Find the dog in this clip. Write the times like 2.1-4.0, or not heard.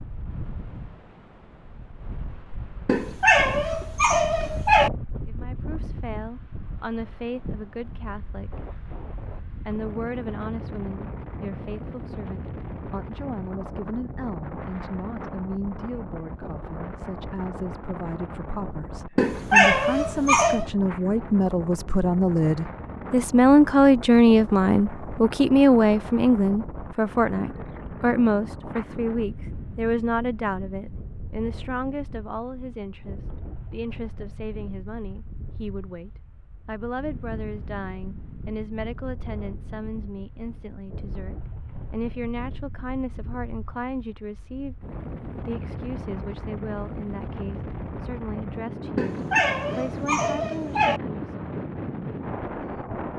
2.9-4.9, 19.1-20.6, 49.0-51.0.